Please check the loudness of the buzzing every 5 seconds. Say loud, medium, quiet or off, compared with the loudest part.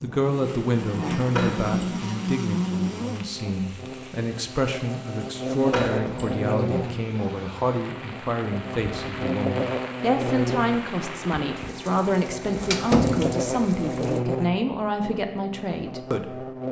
loud, loud, loud, medium.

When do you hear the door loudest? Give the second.
13 s.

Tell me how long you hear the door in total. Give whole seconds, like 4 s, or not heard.
2 s.